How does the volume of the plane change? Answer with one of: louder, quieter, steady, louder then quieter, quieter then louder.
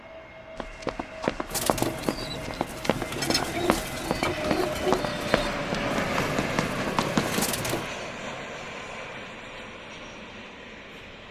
louder then quieter.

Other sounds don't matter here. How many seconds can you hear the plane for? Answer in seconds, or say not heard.
11 s.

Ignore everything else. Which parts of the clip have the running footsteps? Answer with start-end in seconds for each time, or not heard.
0.6-7.5.